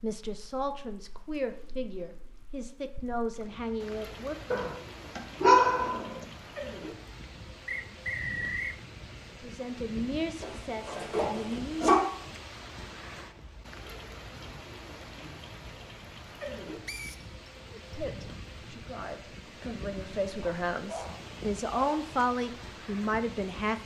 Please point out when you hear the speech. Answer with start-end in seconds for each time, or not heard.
0.0-4.5, 9.4-11.9, 17.8-23.8.